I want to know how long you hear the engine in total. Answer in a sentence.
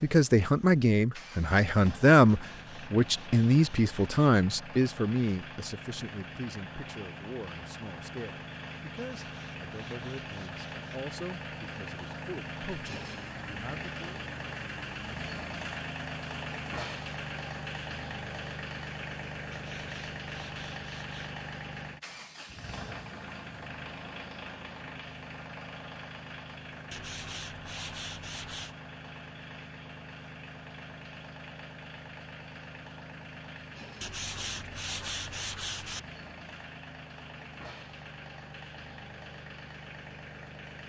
You can hear the engine for 41 seconds altogether.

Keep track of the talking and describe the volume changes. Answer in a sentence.
The volume of the talking goes down.